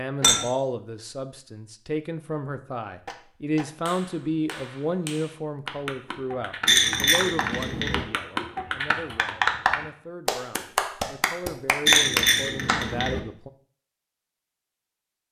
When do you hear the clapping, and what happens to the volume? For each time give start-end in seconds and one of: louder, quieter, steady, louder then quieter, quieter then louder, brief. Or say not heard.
3.0-12.9 louder.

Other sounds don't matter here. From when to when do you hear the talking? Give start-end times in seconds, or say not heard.
0.0-13.5.